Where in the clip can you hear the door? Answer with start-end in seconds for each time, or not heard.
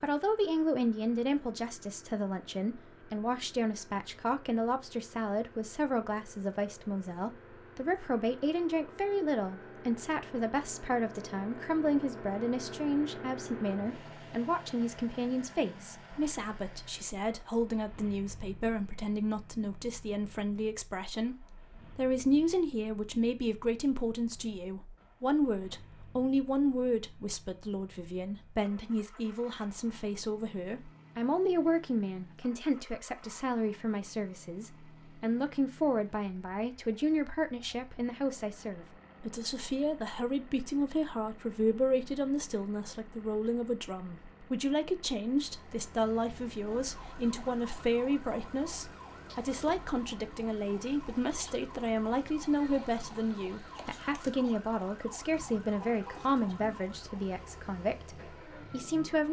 not heard.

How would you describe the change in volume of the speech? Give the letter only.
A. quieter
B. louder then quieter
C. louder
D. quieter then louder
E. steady
E.